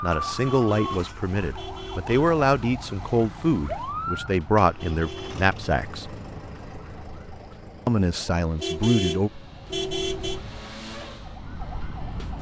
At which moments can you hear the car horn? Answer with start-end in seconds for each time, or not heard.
0.4-2.1, 4.8-5.5, 8.6-10.4.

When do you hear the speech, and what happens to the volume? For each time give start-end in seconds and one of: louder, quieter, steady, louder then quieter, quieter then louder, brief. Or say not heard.
0.0-6.0 steady
7.8-9.3 brief.